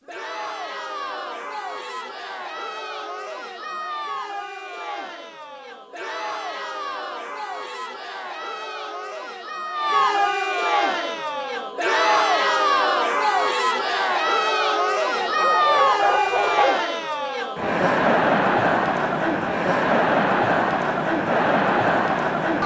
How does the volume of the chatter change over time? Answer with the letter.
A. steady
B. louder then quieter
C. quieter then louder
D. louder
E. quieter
D.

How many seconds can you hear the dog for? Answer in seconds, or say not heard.
2 s.